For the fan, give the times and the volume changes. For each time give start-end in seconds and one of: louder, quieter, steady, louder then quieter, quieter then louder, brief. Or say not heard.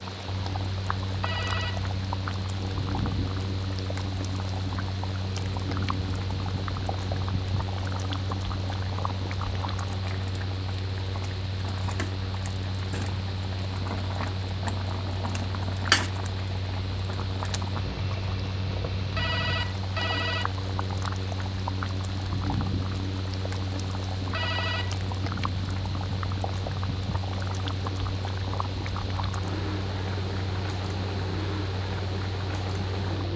0.0-33.3 steady.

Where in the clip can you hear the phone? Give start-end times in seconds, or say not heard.
1.2-1.8, 19.1-20.5, 24.3-24.9.